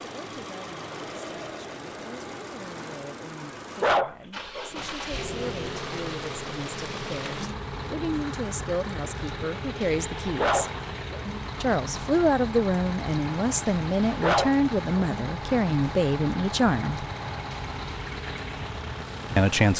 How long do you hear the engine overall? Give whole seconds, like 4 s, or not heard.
20 s.